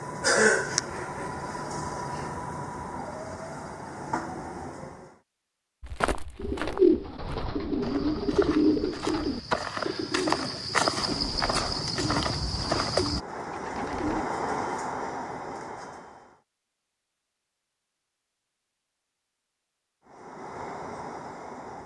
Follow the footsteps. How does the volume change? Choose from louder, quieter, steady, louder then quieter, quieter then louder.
louder.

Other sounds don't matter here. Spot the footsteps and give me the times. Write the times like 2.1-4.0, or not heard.
5.8-13.2.